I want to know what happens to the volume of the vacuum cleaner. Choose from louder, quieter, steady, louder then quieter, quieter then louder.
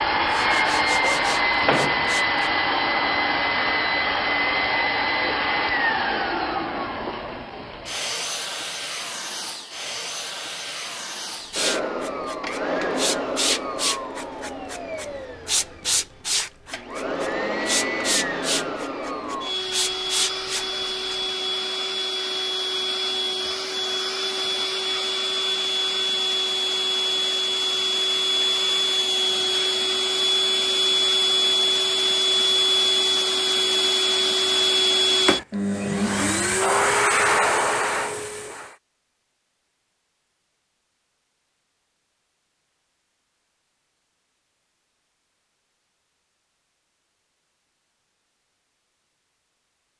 quieter then louder.